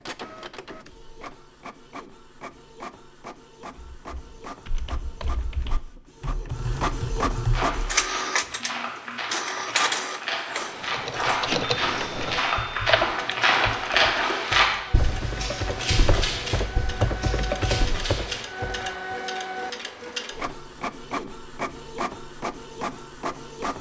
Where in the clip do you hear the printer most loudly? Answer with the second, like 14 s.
8 s.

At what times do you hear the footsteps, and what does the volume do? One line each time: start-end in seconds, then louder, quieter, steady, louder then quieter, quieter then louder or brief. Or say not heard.
7.5-18.9 louder then quieter.